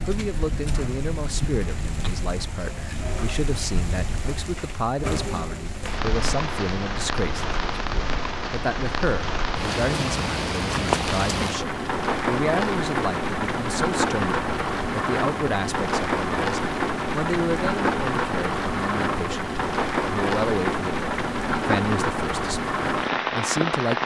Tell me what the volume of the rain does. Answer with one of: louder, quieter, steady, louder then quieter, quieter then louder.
louder.